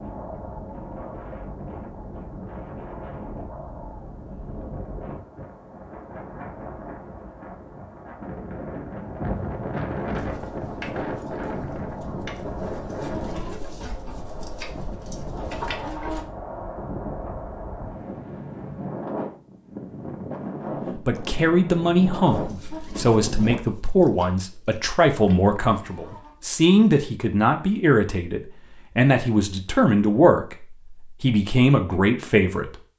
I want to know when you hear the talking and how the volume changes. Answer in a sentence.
You can hear the talking from 20.9 to 32.9 s, at a steady volume.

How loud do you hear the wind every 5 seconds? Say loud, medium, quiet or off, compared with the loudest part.
medium, loud, loud, loud, loud, off, off.